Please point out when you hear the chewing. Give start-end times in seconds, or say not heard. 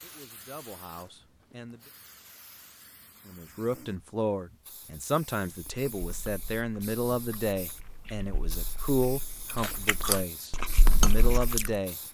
5.5-11.8.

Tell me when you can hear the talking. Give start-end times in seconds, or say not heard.
0.0-1.8, 3.2-11.9.